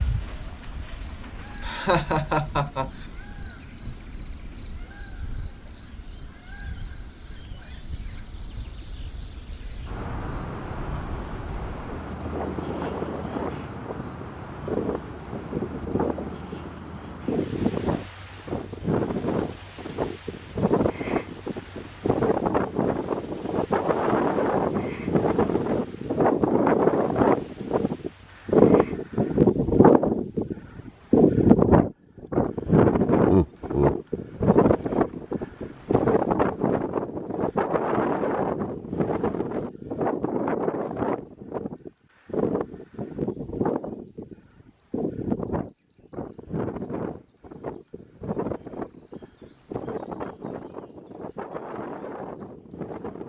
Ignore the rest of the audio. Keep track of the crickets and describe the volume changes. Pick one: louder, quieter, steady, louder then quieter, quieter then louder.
quieter then louder.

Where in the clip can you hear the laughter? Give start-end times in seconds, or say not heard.
1.6-2.9, 33.2-34.0.